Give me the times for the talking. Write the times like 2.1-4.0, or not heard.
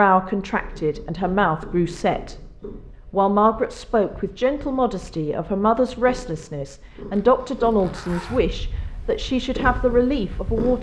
0.0-2.4, 3.1-10.7.